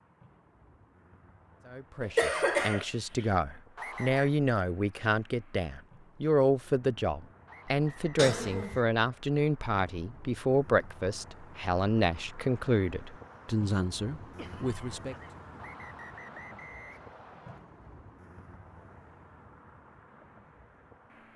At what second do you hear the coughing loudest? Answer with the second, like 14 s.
2 s.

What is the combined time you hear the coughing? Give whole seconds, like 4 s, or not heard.
3 s.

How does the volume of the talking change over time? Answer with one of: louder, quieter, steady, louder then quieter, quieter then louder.
steady.